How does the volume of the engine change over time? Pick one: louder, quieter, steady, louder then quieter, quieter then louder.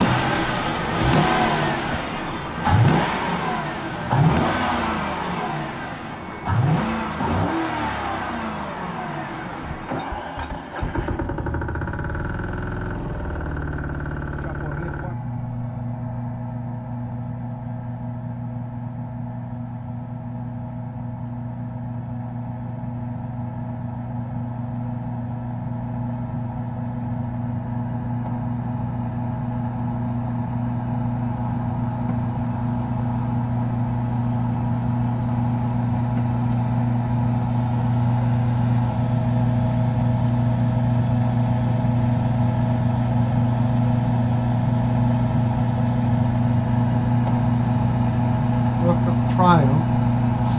quieter then louder.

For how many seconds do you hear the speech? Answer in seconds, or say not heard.
2 s.